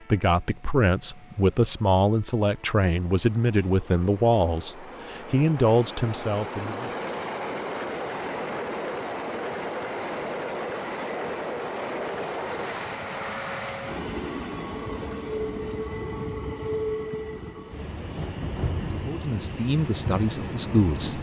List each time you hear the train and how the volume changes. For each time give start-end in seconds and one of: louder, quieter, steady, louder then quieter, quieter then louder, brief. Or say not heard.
0.0-21.1 louder.